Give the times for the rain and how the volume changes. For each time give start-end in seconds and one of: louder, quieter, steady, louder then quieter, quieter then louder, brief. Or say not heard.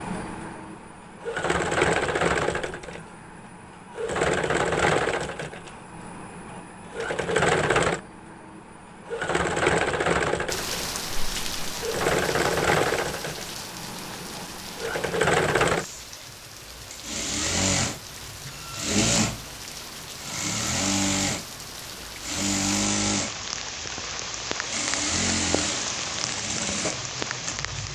10.4-27.8 quieter then louder.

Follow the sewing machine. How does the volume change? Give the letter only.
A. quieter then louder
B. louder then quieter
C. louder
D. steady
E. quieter
D.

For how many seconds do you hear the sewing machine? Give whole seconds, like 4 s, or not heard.
28 s.